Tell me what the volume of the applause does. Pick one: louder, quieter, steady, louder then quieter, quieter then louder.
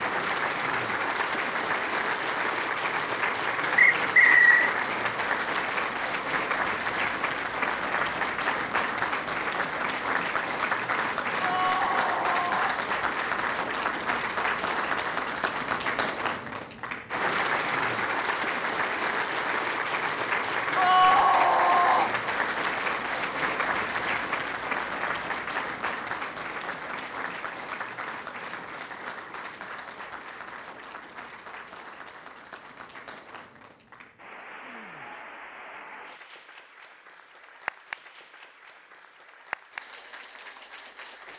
quieter.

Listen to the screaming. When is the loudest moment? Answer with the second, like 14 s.
21 s.